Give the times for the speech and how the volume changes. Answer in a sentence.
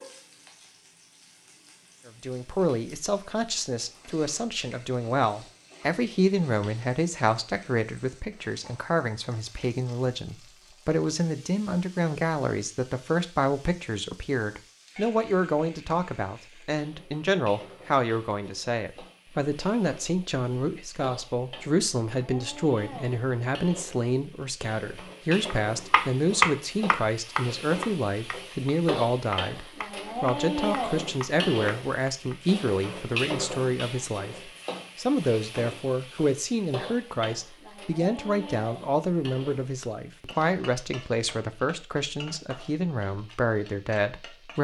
The speech can be heard from 2.0 to 44.6 s, at a steady volume.